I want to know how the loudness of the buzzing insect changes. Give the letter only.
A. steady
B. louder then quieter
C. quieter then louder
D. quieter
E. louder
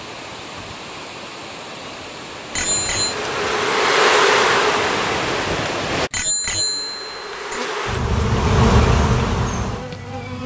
C.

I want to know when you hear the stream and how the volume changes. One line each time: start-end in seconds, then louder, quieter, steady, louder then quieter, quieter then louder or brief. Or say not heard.
0.0-6.1 louder.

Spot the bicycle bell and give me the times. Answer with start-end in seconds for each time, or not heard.
2.5-3.1, 6.1-7.6.